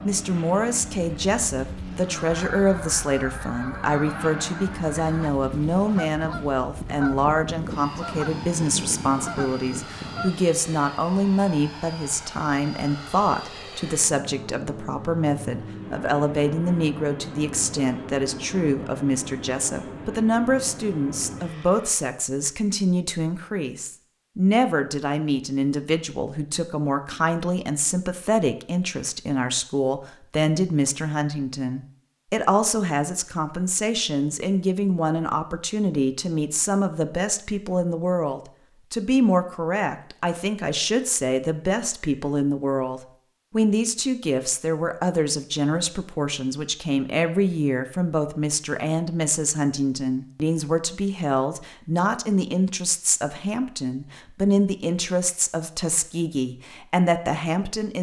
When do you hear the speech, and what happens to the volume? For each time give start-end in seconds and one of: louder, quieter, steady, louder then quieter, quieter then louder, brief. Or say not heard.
0.1-57.9 steady.